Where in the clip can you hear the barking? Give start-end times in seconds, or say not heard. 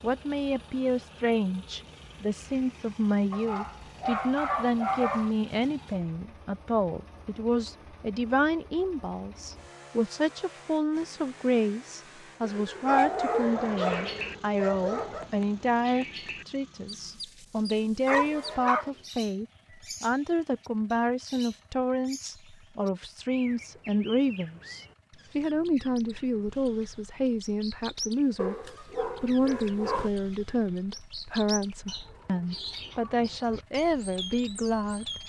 3.3-5.3, 12.4-15.3, 18.1-18.9, 28.4-30.1.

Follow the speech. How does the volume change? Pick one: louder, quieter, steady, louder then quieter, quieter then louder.
steady.